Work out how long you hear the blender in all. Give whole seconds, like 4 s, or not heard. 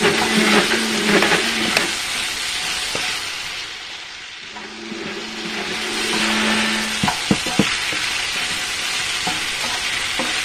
5 s.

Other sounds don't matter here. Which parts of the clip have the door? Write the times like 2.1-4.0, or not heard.
1.2-1.9, 7.0-7.7.